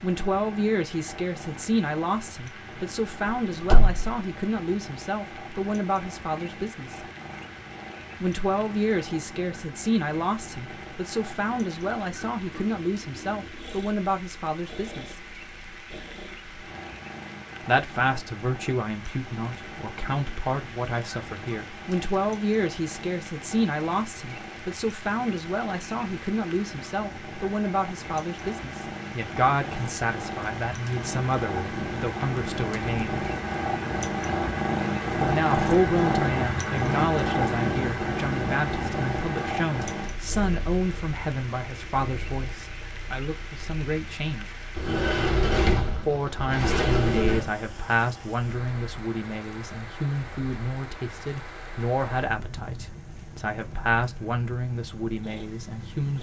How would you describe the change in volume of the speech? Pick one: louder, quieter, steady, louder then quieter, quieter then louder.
steady.